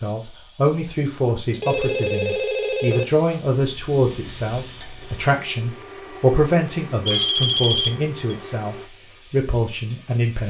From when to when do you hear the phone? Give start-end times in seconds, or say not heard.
1.5-3.0, 7.0-8.3.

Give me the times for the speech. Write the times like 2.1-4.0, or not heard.
0.0-10.4.